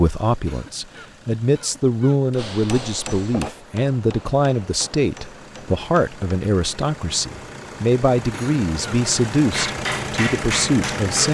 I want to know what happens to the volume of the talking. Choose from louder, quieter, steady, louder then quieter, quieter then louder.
steady.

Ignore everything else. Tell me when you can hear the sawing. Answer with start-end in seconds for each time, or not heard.
not heard.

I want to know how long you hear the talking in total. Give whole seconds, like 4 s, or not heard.
11 s.